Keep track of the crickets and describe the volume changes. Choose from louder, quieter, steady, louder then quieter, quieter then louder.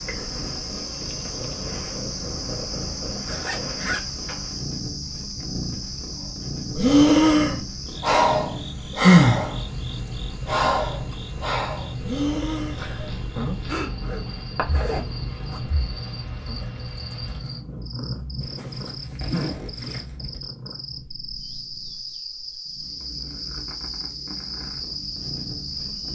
quieter then louder.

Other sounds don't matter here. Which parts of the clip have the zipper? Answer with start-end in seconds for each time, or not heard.
3.2-4.5, 14.0-15.6, 18.4-20.4.